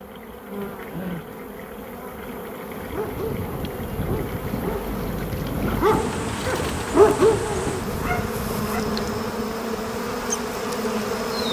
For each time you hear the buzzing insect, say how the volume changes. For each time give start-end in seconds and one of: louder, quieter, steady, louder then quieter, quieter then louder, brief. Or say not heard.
0.0-11.4 louder.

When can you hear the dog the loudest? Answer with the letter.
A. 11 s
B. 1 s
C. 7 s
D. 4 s
C.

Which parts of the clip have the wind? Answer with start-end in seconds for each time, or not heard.
2.7-11.4.